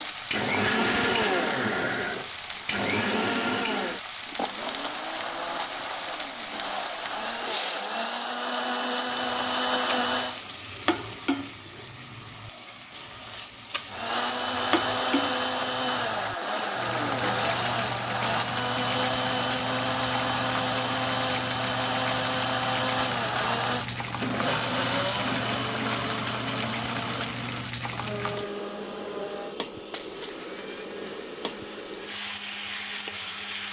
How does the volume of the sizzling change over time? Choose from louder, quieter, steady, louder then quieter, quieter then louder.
steady.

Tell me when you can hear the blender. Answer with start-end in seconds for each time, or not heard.
0.0-10.4, 13.8-33.6.